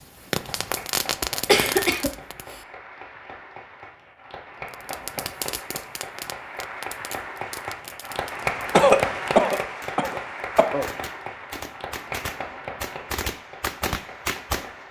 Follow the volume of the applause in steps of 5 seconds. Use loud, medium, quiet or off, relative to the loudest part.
medium, loud, medium.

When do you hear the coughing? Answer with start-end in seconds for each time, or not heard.
1.4-2.5, 8.7-10.8.